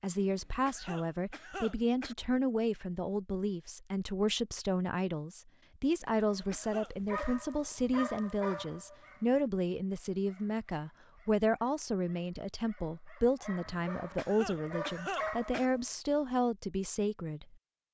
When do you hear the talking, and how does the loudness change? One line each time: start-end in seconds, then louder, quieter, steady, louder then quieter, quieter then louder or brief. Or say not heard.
0.0-17.6 steady.